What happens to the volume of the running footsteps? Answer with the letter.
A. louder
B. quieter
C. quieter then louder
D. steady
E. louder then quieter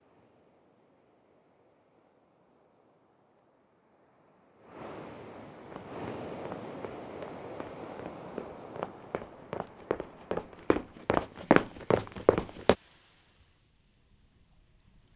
A.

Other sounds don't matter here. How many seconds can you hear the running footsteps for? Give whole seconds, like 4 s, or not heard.
7 s.